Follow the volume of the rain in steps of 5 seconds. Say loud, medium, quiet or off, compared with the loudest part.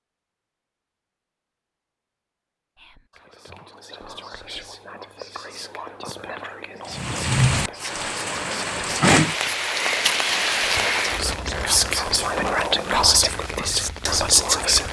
off, loud, medium.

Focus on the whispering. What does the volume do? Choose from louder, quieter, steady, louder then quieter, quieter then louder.
louder.